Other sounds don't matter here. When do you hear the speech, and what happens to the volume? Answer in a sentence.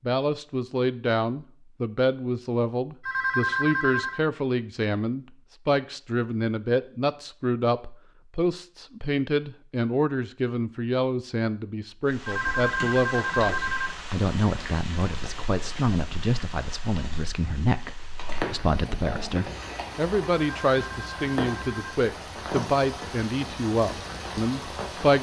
The speech can be heard from 0.0 to 25.1 s, at a steady volume.